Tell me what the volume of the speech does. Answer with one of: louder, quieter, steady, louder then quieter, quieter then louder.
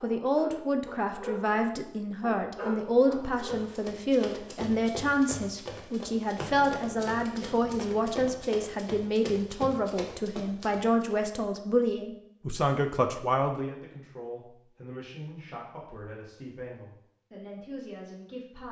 quieter.